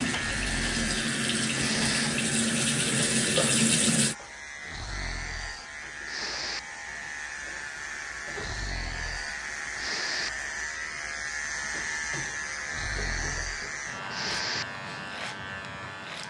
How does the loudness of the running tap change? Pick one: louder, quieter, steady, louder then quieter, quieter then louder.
louder.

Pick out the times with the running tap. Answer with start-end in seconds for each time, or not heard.
0.0-4.2.